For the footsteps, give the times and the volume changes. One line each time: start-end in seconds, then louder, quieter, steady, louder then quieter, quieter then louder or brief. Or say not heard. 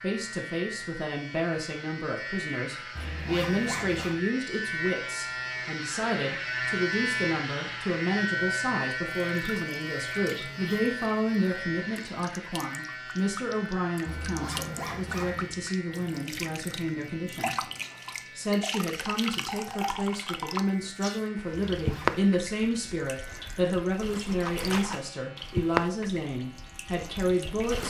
not heard.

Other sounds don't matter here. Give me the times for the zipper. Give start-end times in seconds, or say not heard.
3.0-4.2, 14.1-15.6, 21.7-22.2.